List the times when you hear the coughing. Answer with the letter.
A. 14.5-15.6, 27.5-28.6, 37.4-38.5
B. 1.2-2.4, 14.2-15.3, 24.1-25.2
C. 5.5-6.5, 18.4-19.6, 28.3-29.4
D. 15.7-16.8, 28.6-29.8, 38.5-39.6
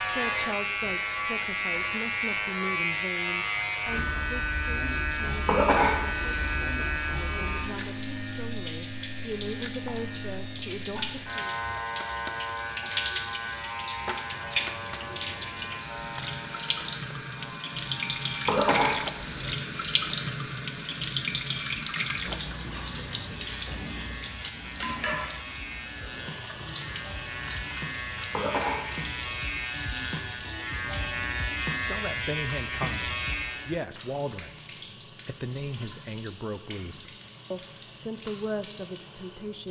C.